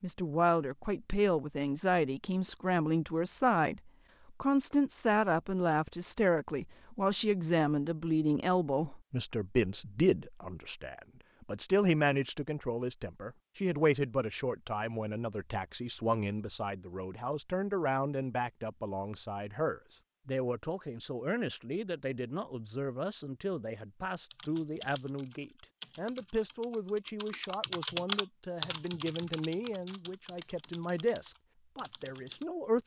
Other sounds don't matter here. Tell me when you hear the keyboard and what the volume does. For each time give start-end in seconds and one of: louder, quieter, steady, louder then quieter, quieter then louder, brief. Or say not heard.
24.3-32.5 louder then quieter.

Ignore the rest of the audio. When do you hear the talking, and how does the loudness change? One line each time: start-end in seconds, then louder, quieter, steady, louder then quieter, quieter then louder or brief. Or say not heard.
0.0-32.8 quieter.